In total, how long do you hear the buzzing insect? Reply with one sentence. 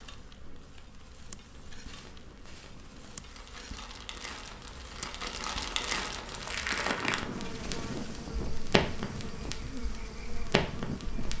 The buzzing insect can be heard for 11 seconds in total.